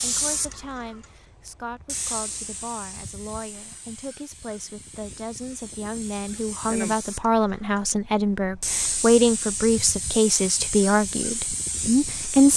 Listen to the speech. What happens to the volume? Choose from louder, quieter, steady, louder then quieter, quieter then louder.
louder.